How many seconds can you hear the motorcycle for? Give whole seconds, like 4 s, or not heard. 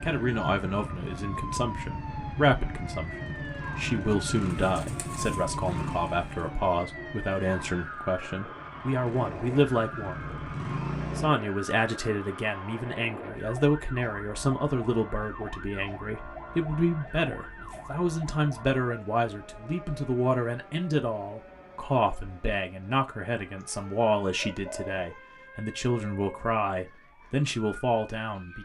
11 s.